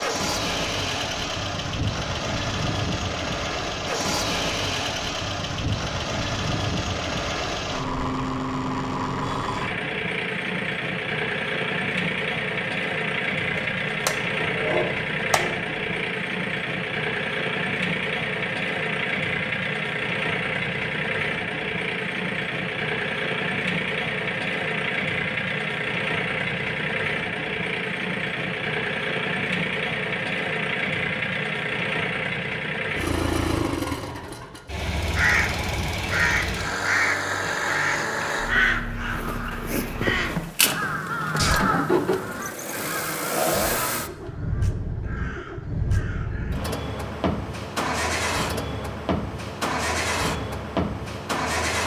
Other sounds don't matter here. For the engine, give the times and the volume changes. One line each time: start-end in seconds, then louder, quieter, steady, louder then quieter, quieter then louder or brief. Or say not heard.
0.0-51.8 steady.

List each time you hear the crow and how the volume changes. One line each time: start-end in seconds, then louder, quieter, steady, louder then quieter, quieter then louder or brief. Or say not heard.
35.1-46.7 quieter.